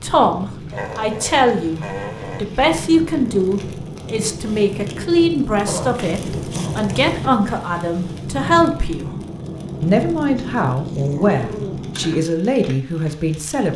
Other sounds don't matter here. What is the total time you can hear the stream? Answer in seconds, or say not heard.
not heard.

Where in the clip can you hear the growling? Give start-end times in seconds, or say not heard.
0.7-2.5, 5.7-7.1, 10.3-12.1.